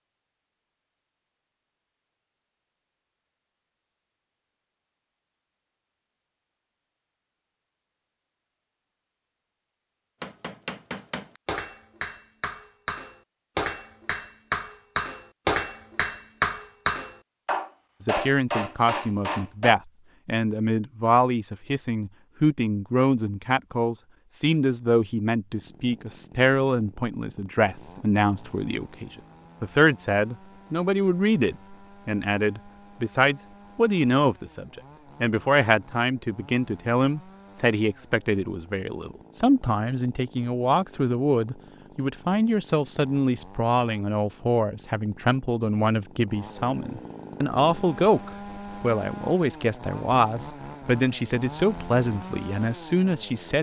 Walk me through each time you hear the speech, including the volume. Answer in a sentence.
The speech can be heard from 18.0 to 53.5 s, at a steady volume.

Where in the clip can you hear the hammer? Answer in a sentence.
The hammer can be heard from 10.2 to 19.8 s.